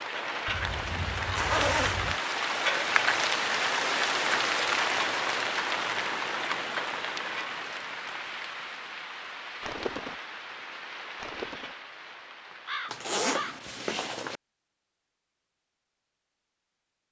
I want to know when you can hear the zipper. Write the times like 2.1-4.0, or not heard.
0.5-2.2, 12.9-14.4.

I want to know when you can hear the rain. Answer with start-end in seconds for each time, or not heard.
0.0-13.8.